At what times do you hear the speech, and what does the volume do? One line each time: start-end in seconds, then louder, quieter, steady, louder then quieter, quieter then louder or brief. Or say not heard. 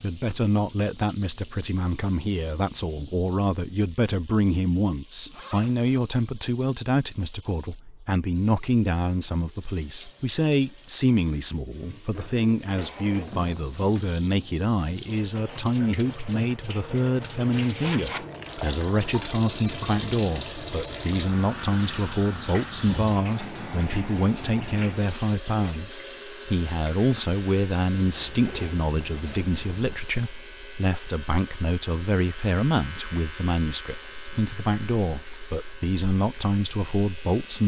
0.0-37.6 steady.